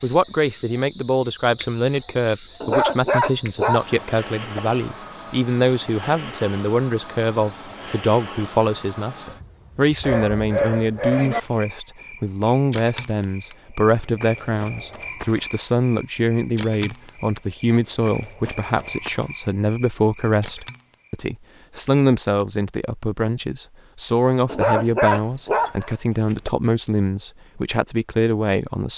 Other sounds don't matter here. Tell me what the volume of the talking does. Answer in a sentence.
The volume of the talking stays about the same.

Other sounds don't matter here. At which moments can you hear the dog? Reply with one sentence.
The dog can be heard from 2.6 to 4.6 s, from 10.0 to 11.4 s and from 24.4 to 26.5 s.